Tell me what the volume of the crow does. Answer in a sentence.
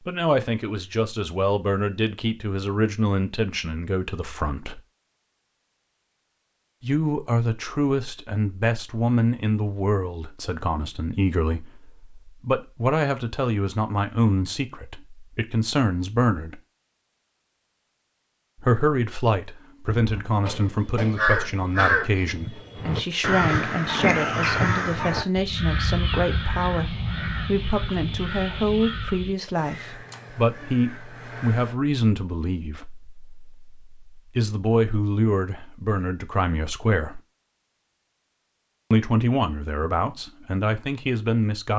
The loudness of the crow goes down.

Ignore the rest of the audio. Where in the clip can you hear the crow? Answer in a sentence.
The crow can be heard from 19.9 to 31.8 s.